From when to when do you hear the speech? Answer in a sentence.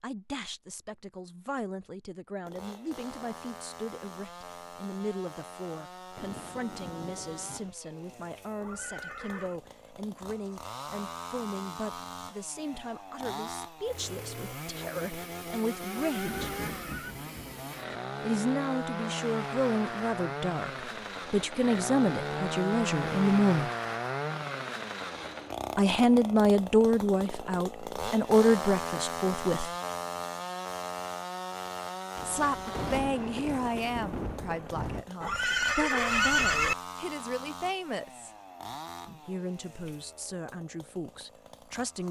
The speech can be heard from 0.0 to 16.5 s, from 18.2 to 23.7 s, from 25.8 to 29.7 s, from 32.2 to 38.3 s and from 39.0 to 42.0 s.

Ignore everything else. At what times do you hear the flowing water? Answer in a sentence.
You can't hear the flowing water here.